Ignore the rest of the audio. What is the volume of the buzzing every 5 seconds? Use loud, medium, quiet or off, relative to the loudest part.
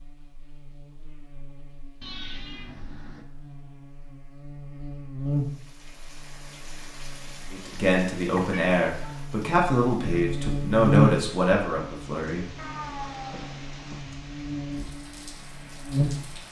quiet, medium, loud, loud.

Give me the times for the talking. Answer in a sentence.
You can hear the talking from 7.5 to 12.4 s.